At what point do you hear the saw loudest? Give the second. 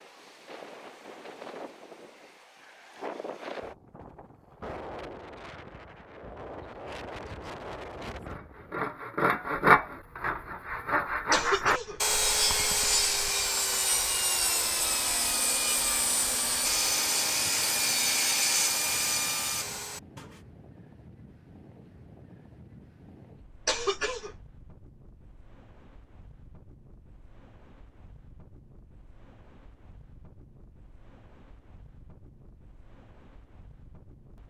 10 s.